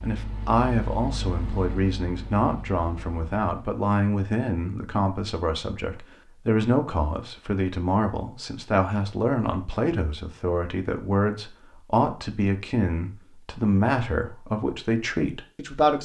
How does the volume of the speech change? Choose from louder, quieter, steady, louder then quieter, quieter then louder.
steady.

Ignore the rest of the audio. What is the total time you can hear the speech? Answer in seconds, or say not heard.
16 s.